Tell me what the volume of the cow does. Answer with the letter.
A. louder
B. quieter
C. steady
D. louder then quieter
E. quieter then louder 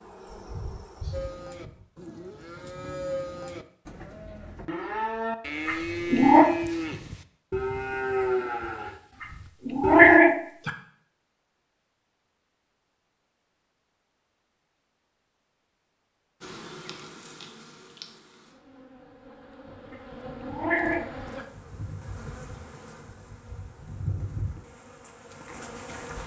A.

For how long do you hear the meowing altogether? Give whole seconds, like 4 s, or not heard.
4 s.